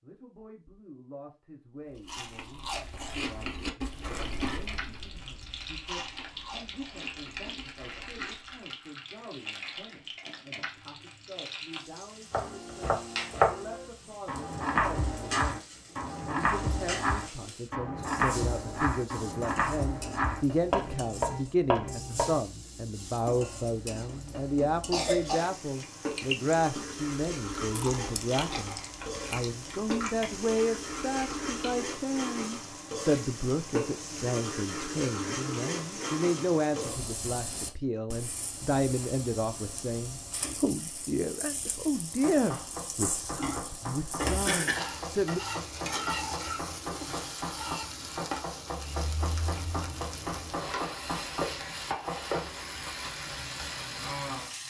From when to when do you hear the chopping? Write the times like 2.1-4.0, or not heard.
12.3-22.4, 42.1-52.5.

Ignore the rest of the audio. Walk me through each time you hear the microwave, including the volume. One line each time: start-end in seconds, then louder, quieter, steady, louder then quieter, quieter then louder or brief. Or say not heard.
not heard.